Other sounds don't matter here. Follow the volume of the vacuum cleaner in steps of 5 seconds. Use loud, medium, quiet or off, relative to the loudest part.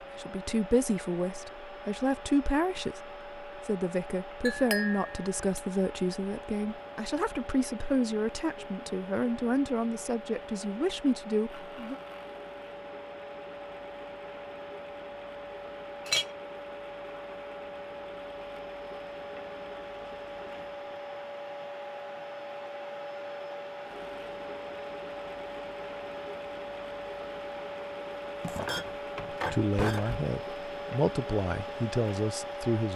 medium, medium, medium, loud, loud, loud, loud.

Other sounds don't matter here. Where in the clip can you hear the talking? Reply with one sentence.
You can hear the talking from 0.1 to 11.9 s and from 29.3 to 32.9 s.